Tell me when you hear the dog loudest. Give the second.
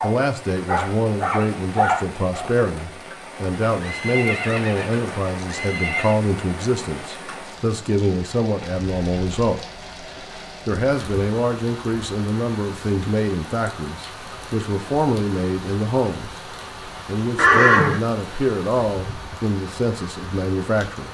2 s.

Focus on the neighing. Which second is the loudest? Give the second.
18 s.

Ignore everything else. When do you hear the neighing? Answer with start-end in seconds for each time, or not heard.
3.8-6.2, 17.4-18.0.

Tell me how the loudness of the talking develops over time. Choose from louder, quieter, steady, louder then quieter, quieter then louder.
steady.